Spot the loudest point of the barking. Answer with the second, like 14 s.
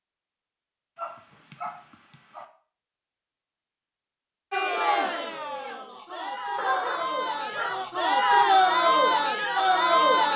7 s.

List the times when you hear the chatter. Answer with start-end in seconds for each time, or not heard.
4.5-10.3.